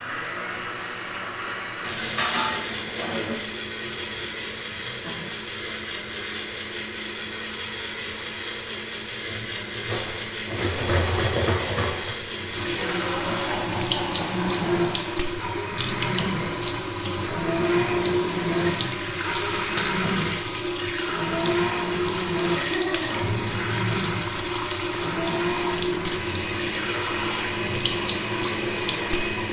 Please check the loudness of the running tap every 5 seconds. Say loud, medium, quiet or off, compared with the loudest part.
quiet, quiet, loud, loud, loud, loud.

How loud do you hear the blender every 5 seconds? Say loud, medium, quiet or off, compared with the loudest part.
medium, medium, loud, loud, loud, loud.